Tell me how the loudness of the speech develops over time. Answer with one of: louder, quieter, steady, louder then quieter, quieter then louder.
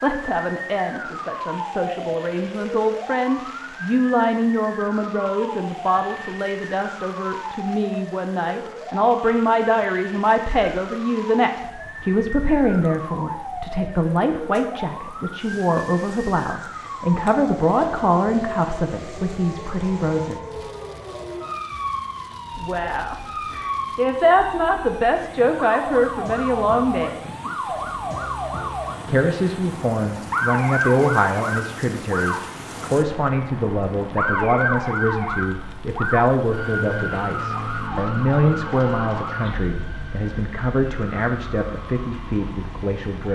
steady.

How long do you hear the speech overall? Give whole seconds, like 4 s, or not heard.
40 s.